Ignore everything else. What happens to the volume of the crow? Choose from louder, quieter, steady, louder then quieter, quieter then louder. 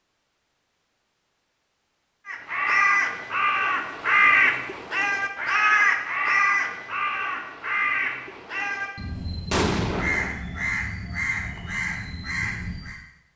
quieter.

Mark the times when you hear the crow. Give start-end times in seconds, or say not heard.
2.2-13.0.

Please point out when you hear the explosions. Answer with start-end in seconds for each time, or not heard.
9.5-10.4.